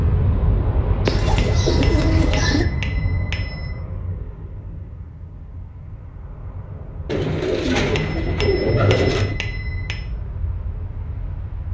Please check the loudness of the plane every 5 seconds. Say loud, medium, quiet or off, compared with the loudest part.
loud, medium, medium.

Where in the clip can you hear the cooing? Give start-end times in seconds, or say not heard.
1.1-2.6, 7.0-9.3.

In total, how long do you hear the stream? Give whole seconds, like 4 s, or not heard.
not heard.